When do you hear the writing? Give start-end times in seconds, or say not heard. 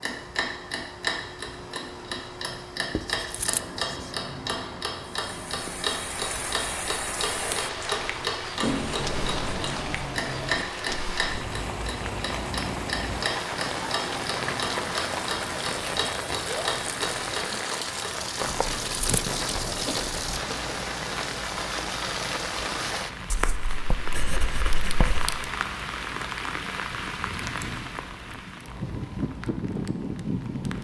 3.0-4.2, 8.6-10.7, 18.4-20.4, 23.3-25.4.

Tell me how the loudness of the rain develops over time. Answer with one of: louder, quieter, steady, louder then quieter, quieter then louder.
steady.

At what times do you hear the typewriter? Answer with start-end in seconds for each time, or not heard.
not heard.